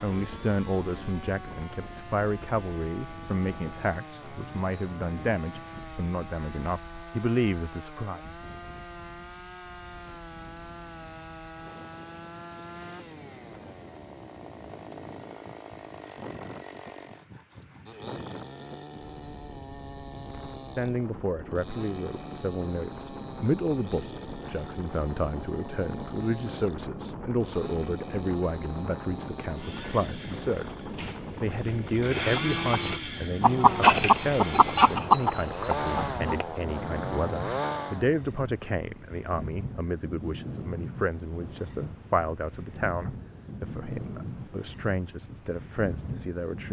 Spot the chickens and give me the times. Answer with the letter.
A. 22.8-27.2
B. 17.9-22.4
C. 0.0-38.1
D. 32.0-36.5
D.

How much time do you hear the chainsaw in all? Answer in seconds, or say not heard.
38 s.